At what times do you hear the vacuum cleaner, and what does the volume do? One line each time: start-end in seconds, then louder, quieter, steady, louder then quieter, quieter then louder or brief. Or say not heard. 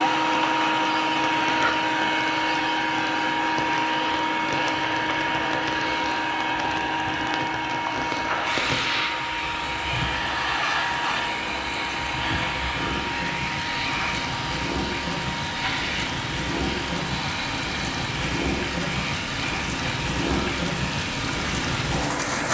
0.0-22.4 quieter.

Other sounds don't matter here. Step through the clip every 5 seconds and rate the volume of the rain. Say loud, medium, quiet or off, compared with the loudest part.
medium, medium, medium, loud, loud.